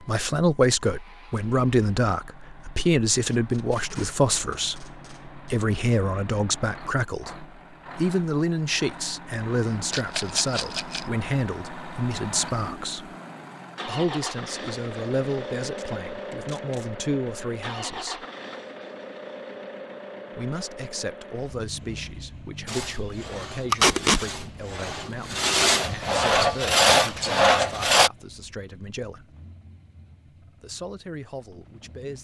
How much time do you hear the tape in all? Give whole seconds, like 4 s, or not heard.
4 s.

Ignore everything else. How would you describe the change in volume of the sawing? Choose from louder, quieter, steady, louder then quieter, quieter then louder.
louder.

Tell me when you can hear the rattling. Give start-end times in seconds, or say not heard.
9.9-11.1, 26.4-27.4.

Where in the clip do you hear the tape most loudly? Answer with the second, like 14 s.
24 s.